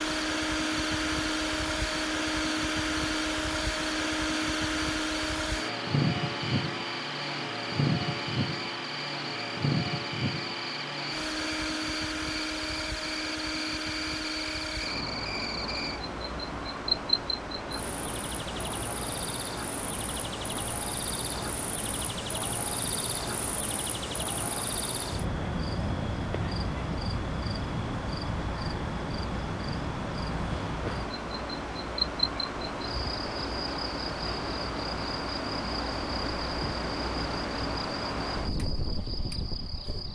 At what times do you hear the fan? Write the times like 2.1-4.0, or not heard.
0.0-40.1.